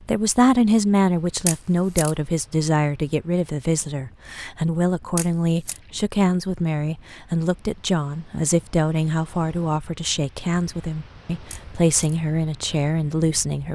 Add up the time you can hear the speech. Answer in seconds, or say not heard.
14 s.